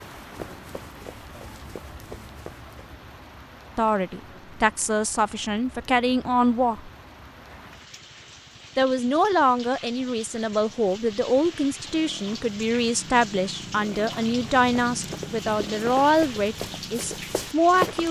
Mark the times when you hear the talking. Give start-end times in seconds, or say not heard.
3.8-6.9, 8.8-18.0.